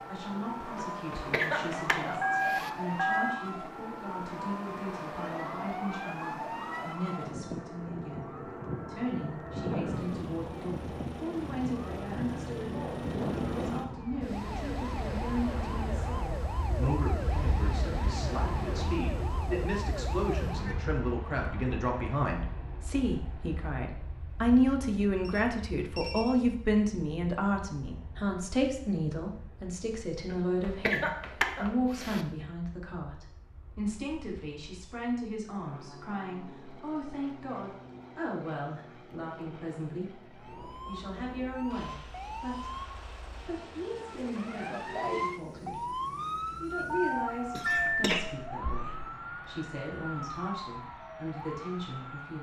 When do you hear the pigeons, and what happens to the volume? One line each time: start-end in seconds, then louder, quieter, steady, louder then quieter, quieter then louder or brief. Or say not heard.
not heard.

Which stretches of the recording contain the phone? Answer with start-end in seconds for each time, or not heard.
2.2-3.5, 25.2-26.4, 46.9-47.9.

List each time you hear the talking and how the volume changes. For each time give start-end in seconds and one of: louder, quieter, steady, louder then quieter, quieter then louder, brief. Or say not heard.
0.1-52.3 louder then quieter.